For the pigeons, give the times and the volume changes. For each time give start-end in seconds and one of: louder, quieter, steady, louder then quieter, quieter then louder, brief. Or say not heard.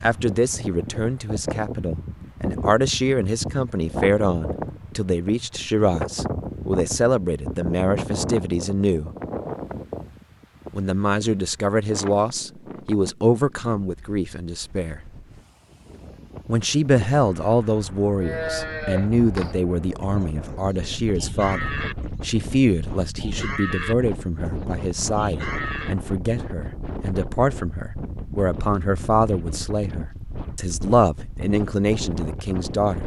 not heard.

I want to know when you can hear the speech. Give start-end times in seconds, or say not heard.
0.0-9.1, 10.7-15.0, 16.4-33.0.